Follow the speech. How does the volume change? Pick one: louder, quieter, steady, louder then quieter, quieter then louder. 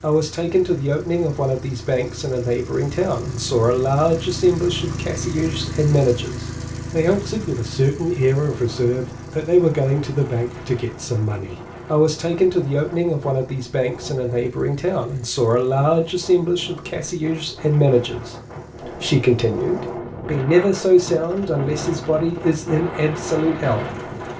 steady.